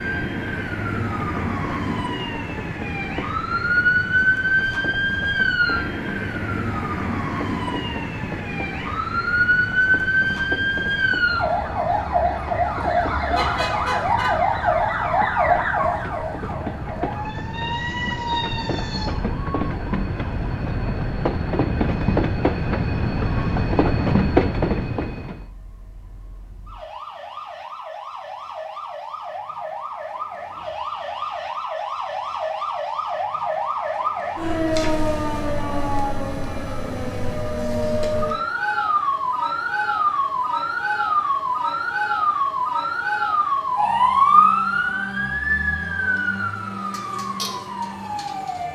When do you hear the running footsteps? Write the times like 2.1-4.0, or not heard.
not heard.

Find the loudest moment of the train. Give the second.
24 s.